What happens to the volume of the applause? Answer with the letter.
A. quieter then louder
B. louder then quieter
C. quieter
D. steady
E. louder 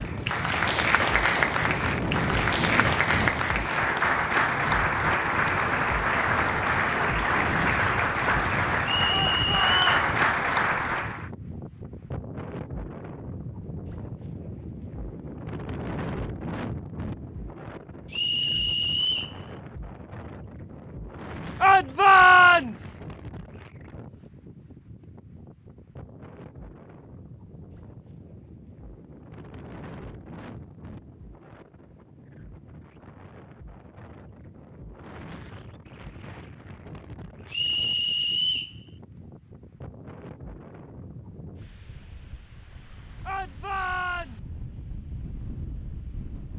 D.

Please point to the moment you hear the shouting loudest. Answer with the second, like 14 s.
22 s.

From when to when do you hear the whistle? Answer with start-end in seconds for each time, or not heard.
8.8-10.1, 18.1-19.4, 37.5-38.8.